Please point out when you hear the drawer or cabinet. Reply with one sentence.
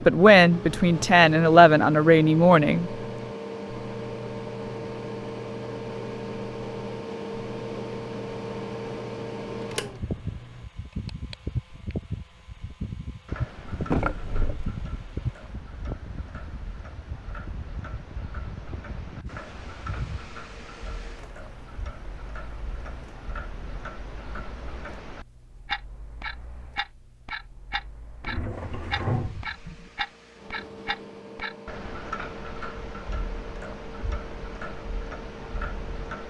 The drawer or cabinet can be heard from 13.7 to 14.8 s and from 28.2 to 29.9 s.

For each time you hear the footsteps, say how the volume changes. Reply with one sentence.
You can't hear the footsteps here.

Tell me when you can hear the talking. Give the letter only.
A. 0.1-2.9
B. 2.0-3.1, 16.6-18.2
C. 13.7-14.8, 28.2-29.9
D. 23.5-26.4
A.